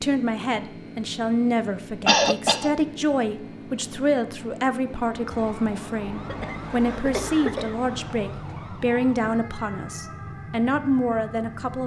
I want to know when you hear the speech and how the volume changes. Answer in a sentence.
The speech can be heard from 0.0 to 11.8 s, at a steady volume.